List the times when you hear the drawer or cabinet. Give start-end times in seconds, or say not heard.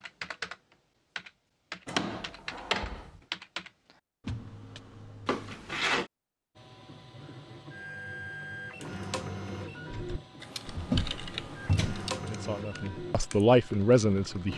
1.9-3.1, 5.2-6.0, 10.7-12.1.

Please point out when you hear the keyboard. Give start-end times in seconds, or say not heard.
0.0-5.5, 9.9-14.4.